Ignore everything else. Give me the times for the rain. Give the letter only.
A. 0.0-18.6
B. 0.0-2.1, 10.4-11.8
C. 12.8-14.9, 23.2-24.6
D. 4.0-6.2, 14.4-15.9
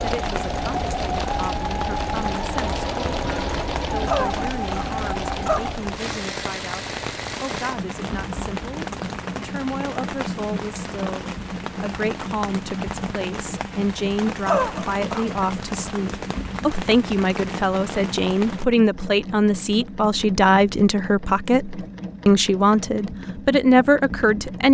A.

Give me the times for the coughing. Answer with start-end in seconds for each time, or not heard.
4.0-6.2, 14.4-15.9.